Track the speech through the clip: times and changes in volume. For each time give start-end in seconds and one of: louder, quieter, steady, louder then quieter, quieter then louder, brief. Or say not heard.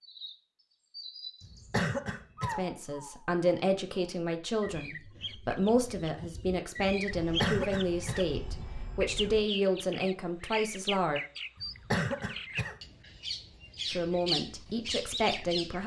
2.5-11.2 steady
13.9-15.8 brief.